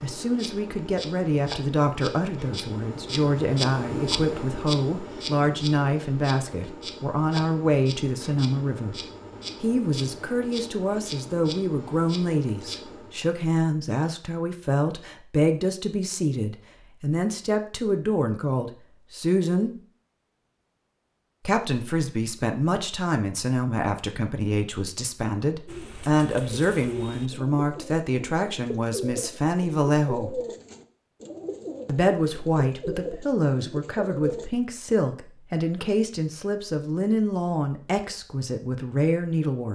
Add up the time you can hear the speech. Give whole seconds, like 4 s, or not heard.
36 s.